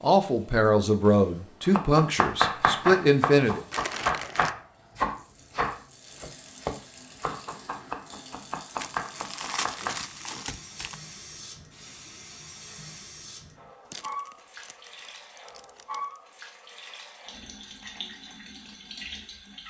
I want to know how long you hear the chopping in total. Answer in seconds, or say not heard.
8 s.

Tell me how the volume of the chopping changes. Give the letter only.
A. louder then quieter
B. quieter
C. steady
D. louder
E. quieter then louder
B.